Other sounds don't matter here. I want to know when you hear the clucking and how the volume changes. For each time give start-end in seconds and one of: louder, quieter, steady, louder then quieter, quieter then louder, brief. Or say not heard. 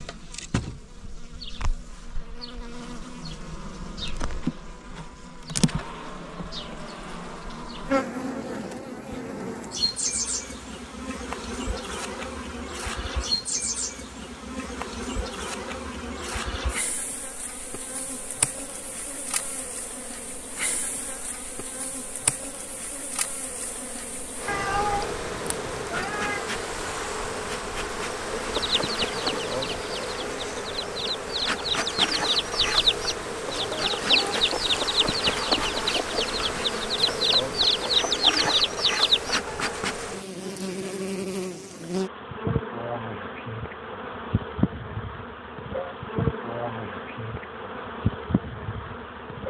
28.5-39.5 louder.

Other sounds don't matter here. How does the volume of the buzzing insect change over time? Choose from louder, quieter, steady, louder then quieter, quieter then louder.
steady.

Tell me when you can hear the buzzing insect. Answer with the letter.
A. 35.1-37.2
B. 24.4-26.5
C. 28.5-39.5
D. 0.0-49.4
D.